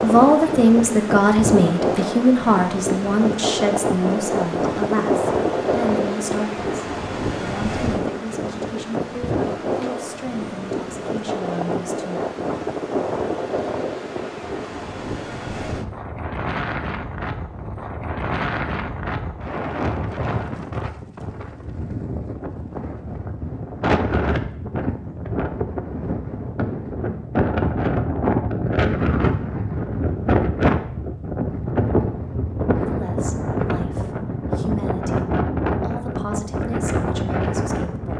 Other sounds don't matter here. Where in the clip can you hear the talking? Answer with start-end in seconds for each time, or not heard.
0.0-12.2, 32.8-38.1.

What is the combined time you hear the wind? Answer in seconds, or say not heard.
38 s.